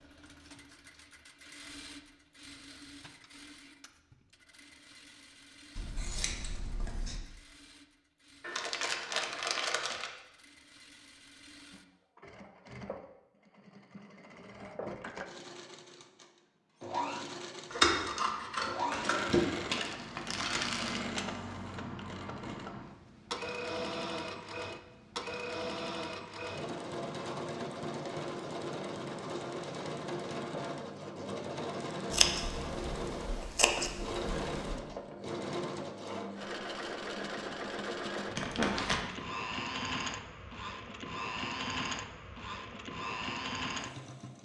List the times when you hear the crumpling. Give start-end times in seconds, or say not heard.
8.4-10.1, 19.5-21.0, 38.4-39.0.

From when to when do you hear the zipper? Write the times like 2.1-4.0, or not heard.
not heard.